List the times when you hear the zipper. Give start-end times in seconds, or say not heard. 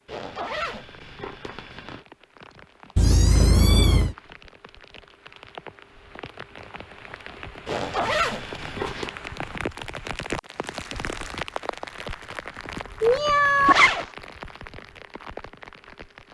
0.1-2.0, 7.7-9.1, 13.7-14.1.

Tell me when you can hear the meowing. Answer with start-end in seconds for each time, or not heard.
3.0-4.2, 13.0-13.8.